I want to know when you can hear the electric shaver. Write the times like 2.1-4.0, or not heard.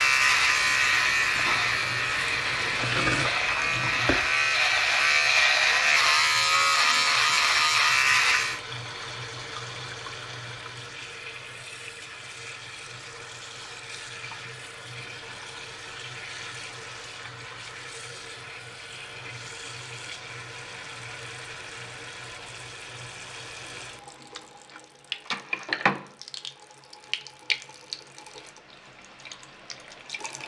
0.0-8.6.